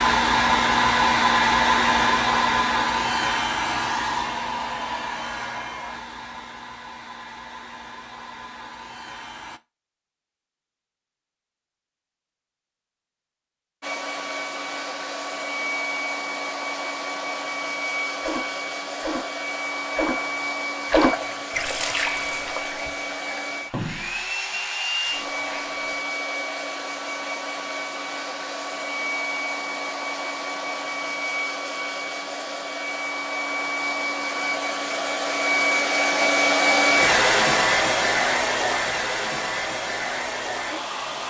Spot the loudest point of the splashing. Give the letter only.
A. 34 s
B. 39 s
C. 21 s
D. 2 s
C.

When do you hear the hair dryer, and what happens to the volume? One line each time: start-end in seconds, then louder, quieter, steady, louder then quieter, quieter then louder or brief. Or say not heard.
0.0-9.6 quieter
13.8-41.2 louder.